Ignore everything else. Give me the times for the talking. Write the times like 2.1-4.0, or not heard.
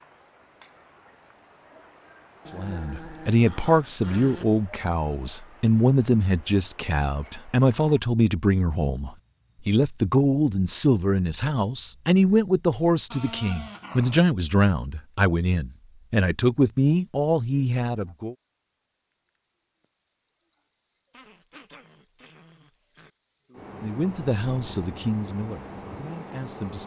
2.5-18.4, 23.8-26.8.